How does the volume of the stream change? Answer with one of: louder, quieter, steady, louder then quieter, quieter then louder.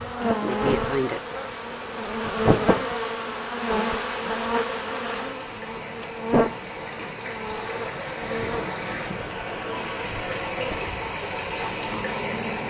louder.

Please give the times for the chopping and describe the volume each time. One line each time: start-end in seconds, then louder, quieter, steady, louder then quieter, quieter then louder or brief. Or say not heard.
not heard.